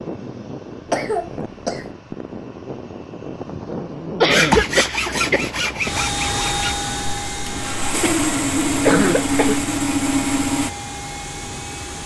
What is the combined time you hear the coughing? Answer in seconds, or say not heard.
4 s.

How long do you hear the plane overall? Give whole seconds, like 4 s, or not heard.
12 s.